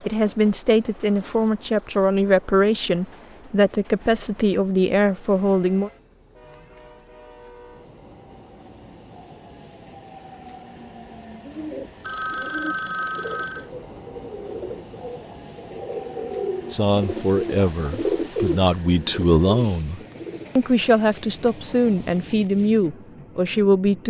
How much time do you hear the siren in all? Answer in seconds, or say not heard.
not heard.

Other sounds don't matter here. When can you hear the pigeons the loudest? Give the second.
18 s.